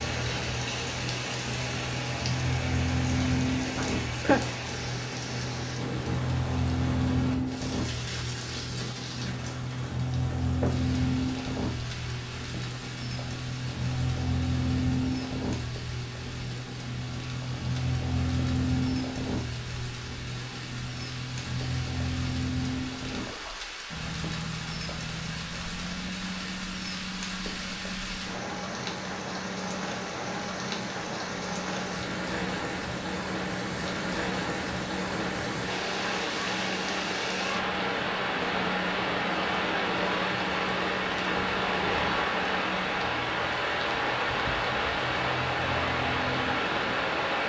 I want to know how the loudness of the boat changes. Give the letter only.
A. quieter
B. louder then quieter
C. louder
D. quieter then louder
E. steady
A.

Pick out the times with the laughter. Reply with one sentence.
The laughter can be heard from 3.8 to 4.4 s.